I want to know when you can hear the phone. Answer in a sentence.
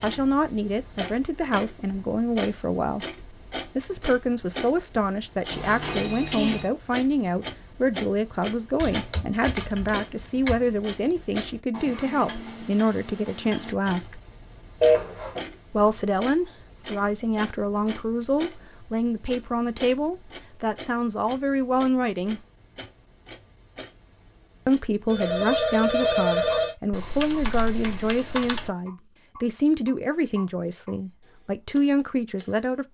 The phone can be heard from 5.5 to 6.7 s, from 14.8 to 15.4 s and from 25.1 to 26.8 s.